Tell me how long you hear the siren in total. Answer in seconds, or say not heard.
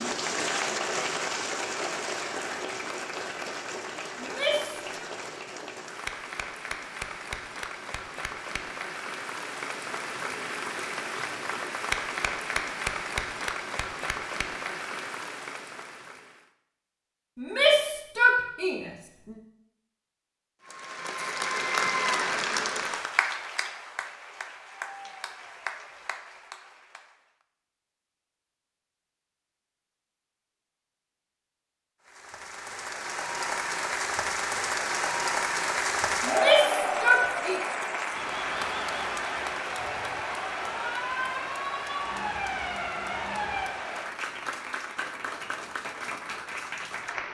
4 s.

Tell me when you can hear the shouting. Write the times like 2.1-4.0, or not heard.
4.2-5.0, 17.4-19.4, 36.2-37.6.